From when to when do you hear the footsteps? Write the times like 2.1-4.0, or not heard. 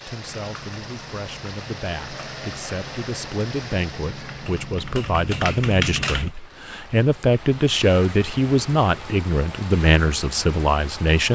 not heard.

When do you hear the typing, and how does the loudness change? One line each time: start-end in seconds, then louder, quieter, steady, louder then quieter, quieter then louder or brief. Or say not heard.
0.2-6.3 louder.